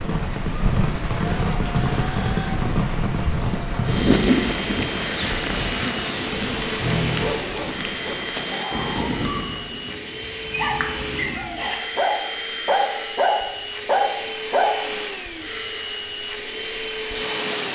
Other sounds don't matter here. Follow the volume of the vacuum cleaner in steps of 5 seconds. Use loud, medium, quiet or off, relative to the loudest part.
medium, loud, loud, loud.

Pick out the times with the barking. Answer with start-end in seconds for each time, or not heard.
6.6-14.8.